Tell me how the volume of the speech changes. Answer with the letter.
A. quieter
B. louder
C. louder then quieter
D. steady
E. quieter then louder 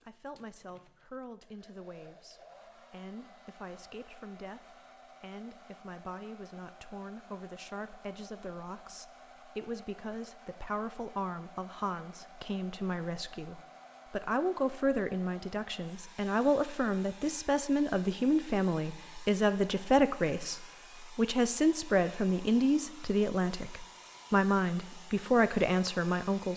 B.